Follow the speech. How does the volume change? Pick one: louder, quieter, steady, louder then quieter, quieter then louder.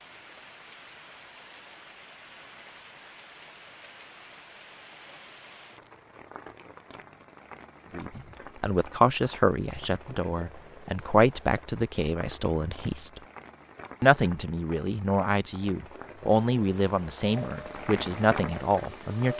steady.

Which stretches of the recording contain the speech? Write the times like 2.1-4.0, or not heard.
8.0-13.2, 14.0-19.3.